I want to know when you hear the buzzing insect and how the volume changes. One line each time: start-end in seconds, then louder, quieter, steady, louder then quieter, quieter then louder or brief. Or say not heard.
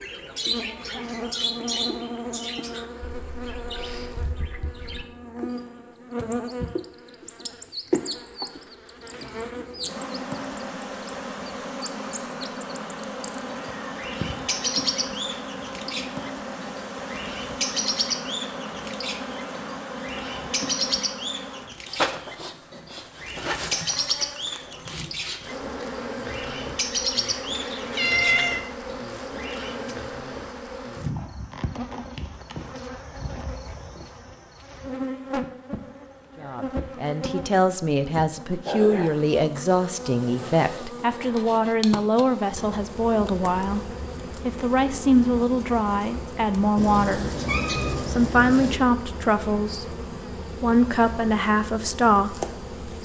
0.0-53.0 steady.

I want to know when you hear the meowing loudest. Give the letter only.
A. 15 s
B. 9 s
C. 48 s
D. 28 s
D.